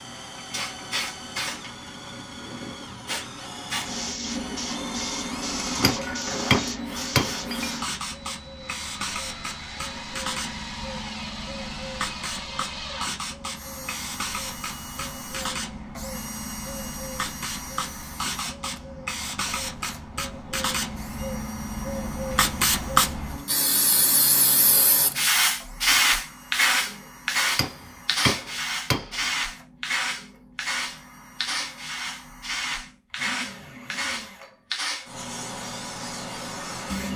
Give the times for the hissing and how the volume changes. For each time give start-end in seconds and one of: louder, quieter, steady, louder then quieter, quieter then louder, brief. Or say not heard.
0.0-37.1 louder then quieter.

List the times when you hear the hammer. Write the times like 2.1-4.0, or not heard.
5.8-7.7, 27.6-29.3.